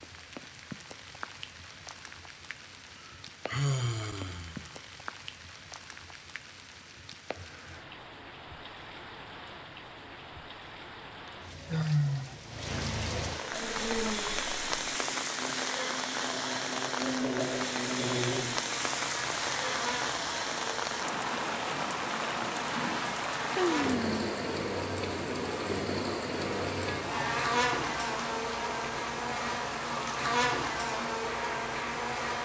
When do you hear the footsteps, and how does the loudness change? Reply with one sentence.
You can't hear the footsteps here.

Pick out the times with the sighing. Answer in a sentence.
You can hear the sighing from 3.0 to 4.7 s, from 11.7 to 12.4 s and from 23.6 to 24.2 s.